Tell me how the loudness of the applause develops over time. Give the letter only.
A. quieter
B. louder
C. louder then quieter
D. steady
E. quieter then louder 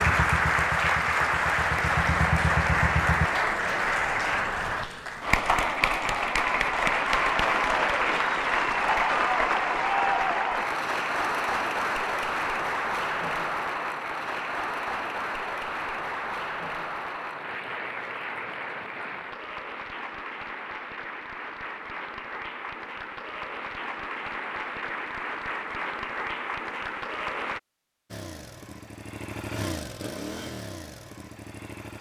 A.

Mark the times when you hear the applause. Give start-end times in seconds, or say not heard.
0.0-27.6.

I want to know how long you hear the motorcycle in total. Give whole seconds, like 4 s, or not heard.
7 s.